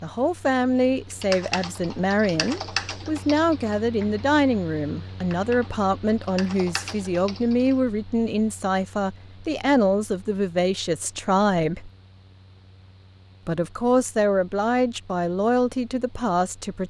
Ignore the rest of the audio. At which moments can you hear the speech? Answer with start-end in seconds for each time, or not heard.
0.0-11.9, 13.4-16.8.